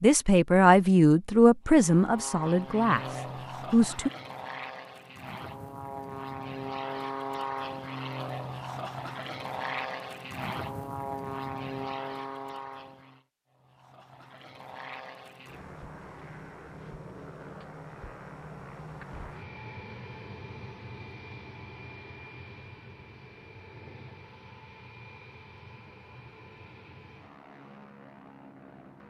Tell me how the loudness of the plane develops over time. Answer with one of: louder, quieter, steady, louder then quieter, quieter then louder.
quieter.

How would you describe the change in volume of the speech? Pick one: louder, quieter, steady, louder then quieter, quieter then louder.
quieter.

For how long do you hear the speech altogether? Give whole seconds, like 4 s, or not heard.
4 s.